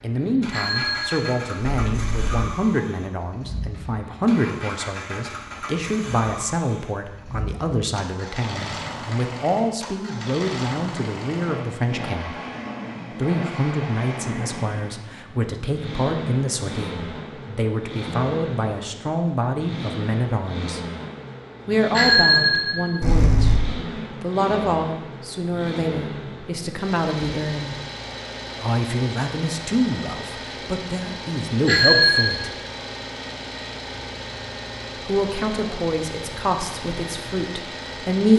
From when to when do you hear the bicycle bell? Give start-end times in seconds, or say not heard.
0.5-2.4, 21.9-23.6, 31.6-32.4.